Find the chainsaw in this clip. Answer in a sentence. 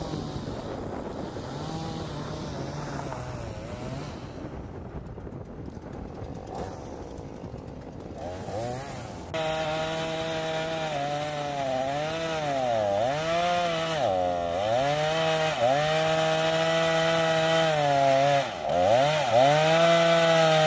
You can hear the chainsaw from 0.0 to 20.6 s.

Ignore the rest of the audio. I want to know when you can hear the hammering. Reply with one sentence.
The hammering can't be heard in this clip.